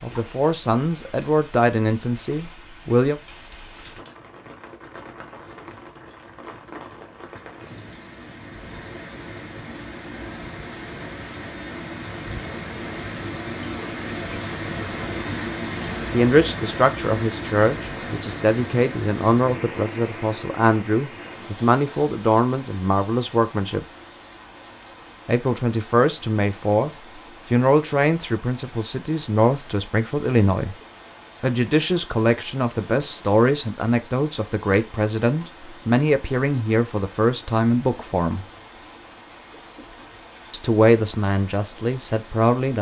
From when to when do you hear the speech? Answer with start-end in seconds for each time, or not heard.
0.0-3.1, 16.1-23.9, 25.2-30.8, 31.4-38.5, 40.5-42.7.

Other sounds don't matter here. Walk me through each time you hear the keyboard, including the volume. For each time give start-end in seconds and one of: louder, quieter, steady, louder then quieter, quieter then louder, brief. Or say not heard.
not heard.